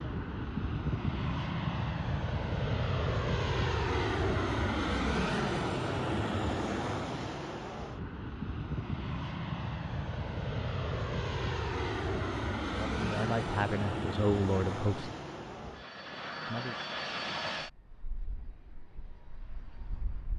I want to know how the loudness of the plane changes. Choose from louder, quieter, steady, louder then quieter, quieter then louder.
quieter.